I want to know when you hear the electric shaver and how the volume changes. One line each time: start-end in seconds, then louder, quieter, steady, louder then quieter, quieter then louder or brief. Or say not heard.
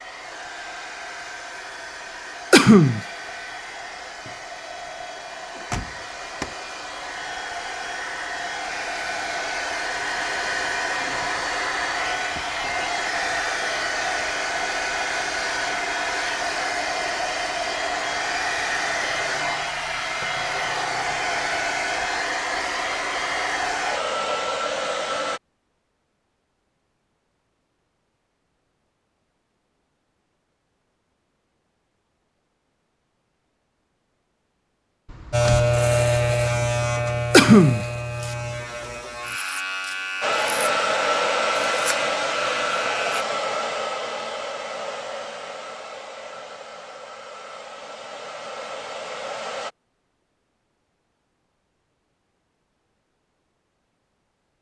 35.3-43.2 quieter.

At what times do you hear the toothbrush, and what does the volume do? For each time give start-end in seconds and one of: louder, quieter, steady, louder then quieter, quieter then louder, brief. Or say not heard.
not heard.